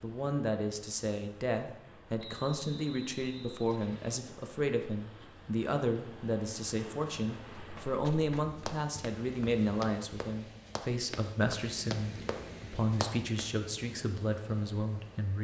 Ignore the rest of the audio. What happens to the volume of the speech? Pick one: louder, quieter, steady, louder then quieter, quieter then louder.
steady.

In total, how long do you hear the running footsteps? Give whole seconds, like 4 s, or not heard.
6 s.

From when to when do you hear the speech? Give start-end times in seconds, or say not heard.
0.0-15.3.